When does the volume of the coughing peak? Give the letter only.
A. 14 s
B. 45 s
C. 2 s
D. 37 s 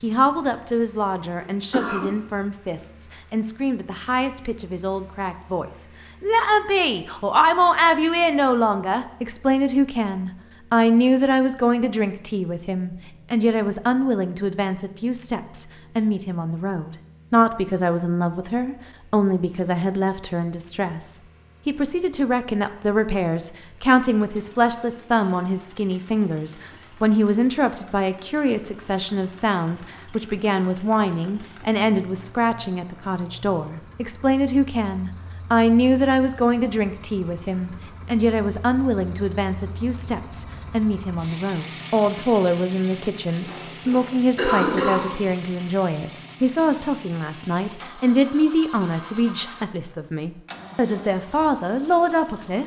B.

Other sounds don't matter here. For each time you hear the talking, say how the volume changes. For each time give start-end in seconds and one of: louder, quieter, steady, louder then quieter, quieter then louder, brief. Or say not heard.
0.0-52.6 steady.